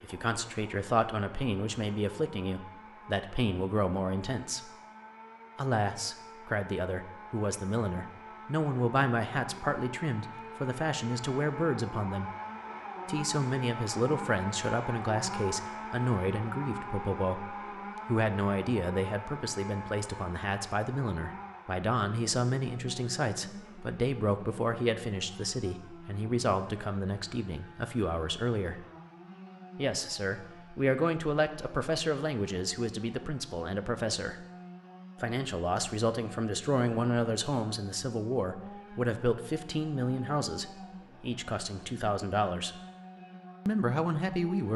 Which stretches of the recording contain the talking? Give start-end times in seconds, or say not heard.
0.0-4.7, 5.5-12.3, 13.1-28.8, 29.8-34.4, 35.2-42.8, 43.6-44.7.